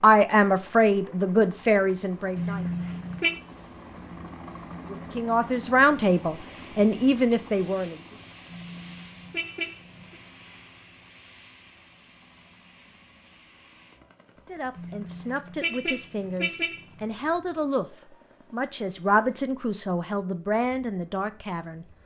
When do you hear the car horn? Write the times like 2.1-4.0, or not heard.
2.4-3.4, 8.5-10.2, 14.8-17.1.